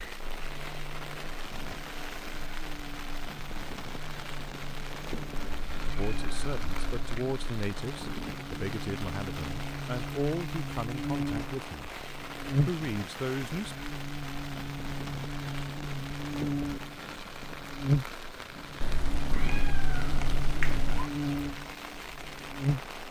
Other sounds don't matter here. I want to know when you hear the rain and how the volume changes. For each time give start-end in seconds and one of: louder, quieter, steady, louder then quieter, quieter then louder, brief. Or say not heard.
0.0-23.0 steady.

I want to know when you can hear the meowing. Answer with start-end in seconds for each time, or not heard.
5.3-7.0, 18.8-21.1.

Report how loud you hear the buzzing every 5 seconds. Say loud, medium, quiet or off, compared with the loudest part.
quiet, medium, loud, loud, loud.